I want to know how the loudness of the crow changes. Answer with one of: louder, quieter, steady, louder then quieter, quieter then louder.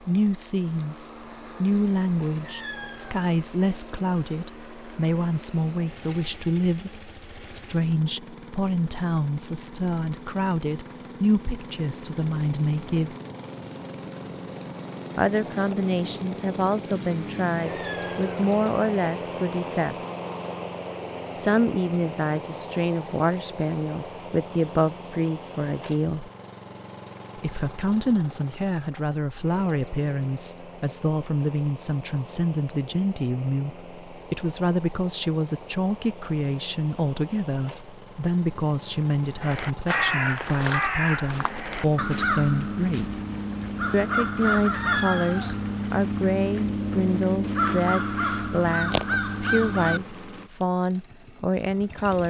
steady.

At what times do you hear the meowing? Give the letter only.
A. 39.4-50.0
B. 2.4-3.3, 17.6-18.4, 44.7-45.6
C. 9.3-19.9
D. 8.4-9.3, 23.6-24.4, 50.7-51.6
B.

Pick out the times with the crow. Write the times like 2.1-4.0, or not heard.
39.4-50.0.